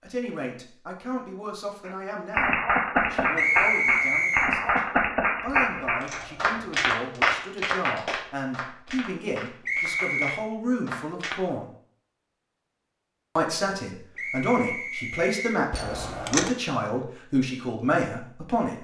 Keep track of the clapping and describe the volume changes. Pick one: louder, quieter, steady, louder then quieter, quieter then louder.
quieter.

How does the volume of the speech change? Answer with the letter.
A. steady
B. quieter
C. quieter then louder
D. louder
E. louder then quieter
D.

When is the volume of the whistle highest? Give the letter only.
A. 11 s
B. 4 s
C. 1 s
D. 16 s
B.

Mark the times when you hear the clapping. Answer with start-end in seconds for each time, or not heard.
1.9-11.3.